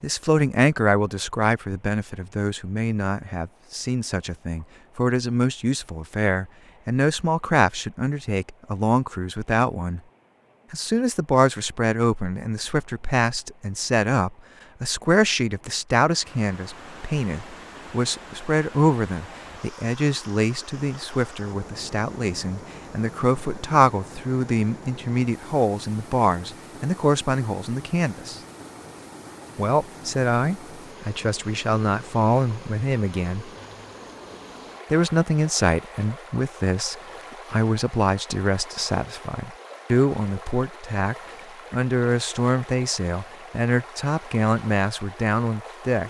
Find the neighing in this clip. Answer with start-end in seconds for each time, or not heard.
not heard.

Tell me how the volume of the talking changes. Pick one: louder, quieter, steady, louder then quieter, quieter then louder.
steady.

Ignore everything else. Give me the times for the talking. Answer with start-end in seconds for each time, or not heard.
0.0-10.0, 10.7-28.4, 29.6-33.5, 34.9-46.0.